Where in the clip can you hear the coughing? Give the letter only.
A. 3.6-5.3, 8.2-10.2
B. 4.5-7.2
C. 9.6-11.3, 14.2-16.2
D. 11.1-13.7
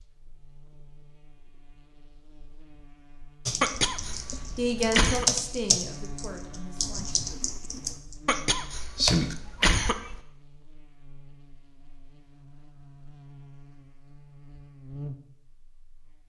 A.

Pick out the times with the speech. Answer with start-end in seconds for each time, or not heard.
4.5-7.2.